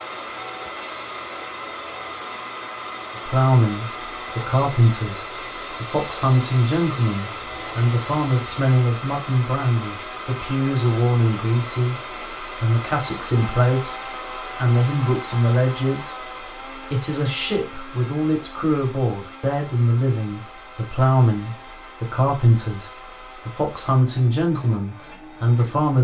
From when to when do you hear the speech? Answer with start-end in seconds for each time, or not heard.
3.1-25.9.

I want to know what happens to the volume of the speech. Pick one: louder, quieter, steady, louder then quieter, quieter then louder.
steady.